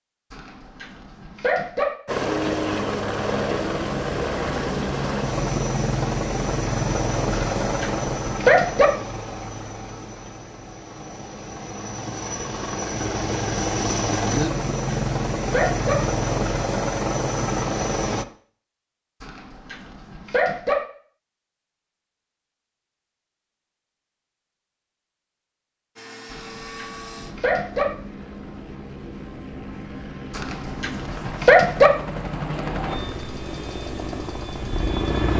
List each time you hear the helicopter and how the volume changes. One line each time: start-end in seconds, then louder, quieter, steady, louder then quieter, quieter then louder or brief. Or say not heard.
2.0-18.2 quieter then louder
25.9-35.3 louder.